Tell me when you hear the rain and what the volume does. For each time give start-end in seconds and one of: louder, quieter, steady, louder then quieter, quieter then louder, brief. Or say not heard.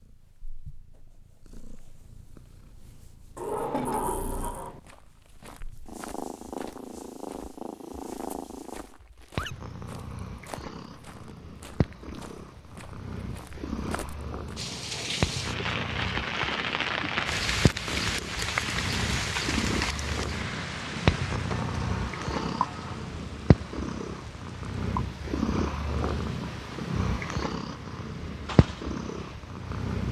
14.6-30.0 quieter.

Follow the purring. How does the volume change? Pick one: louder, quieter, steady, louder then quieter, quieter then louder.
louder.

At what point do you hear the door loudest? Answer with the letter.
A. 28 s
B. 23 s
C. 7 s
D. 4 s
D.